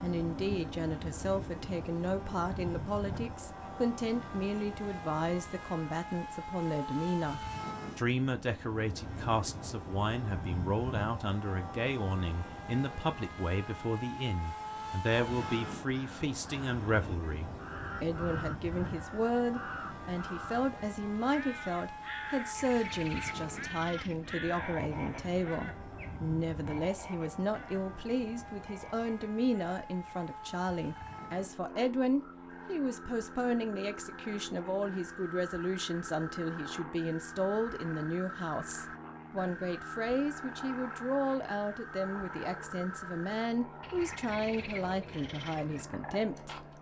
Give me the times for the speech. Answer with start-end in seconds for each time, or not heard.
0.0-46.6.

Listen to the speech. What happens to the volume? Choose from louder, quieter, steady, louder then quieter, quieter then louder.
steady.